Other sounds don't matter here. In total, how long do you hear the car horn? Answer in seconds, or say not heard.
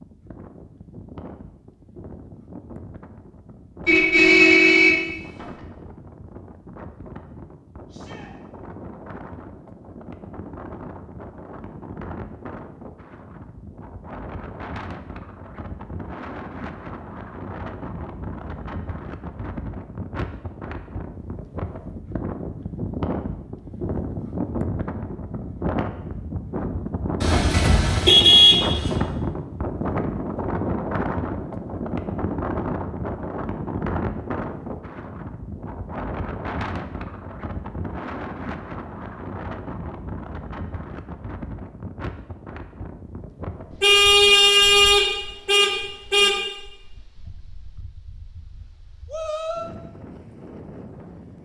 6 s.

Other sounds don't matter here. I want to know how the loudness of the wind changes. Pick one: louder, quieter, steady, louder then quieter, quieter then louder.
louder then quieter.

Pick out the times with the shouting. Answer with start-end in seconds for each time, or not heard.
7.9-8.3, 49.0-49.7.